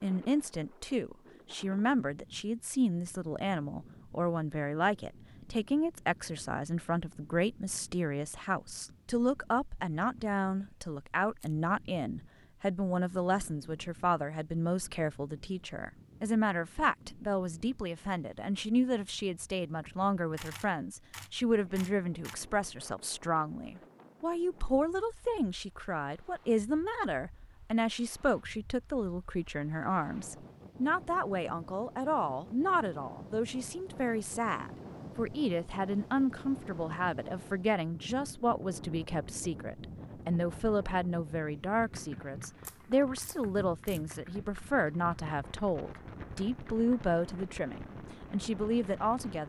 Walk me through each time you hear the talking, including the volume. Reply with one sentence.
You can hear the talking from 0.0 to 49.4 s, at a steady volume.